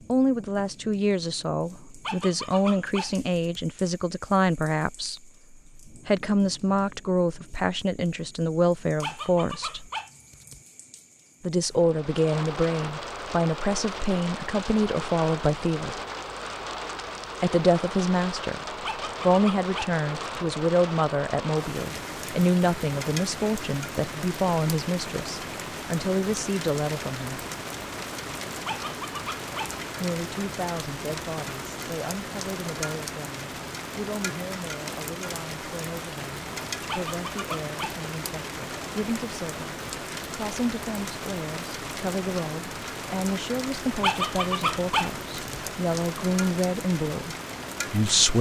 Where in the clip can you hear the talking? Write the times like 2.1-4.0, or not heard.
0.1-9.8, 11.4-16.0, 17.4-18.6, 19.2-27.4, 30.0-48.3.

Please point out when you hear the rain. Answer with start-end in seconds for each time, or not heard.
0.0-48.3.